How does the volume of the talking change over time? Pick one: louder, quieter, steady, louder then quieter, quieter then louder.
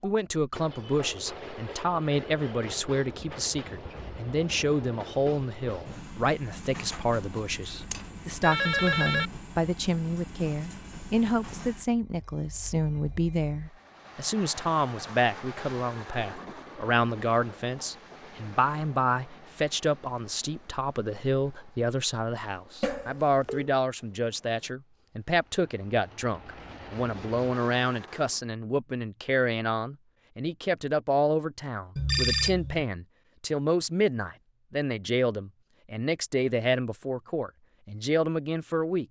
steady.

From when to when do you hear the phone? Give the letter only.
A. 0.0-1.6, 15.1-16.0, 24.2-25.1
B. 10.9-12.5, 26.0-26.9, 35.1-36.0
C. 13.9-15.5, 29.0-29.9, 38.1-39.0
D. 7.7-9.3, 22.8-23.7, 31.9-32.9
D.